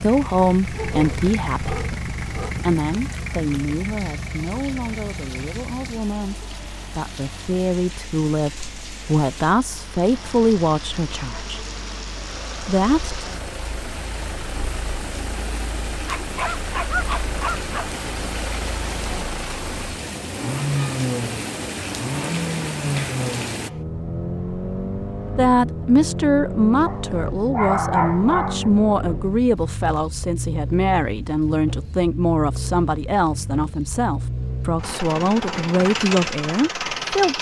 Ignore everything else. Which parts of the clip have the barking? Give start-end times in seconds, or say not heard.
0.7-2.5, 16.1-17.9, 26.9-28.7.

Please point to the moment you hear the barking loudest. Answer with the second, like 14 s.
28 s.